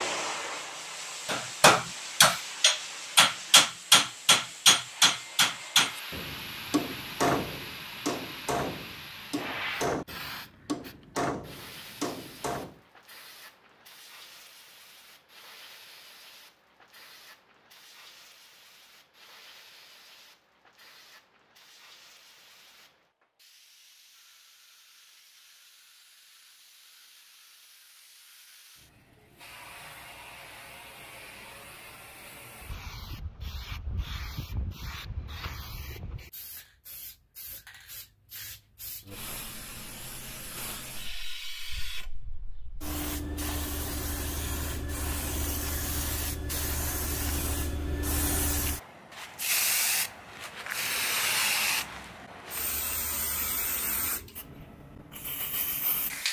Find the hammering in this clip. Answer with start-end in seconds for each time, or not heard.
1.2-12.8.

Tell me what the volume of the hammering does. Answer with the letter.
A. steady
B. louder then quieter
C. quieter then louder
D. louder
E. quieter
E.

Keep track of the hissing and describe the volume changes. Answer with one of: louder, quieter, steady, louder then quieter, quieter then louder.
quieter then louder.